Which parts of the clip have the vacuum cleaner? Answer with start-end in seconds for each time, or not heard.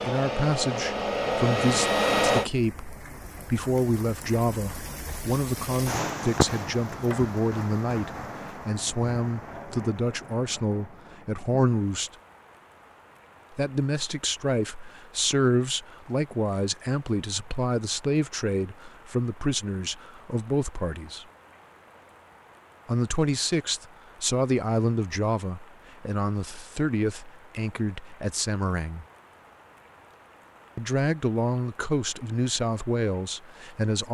0.0-2.5.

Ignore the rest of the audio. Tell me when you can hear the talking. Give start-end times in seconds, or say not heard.
0.0-12.1, 13.6-21.2, 22.9-29.1, 30.8-34.1.